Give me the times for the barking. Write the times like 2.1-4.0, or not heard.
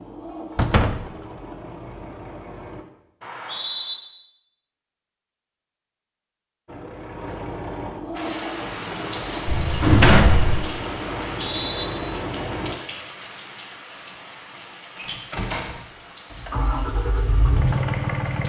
not heard.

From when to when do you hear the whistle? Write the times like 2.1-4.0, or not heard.
3.2-4.0, 11.3-11.8.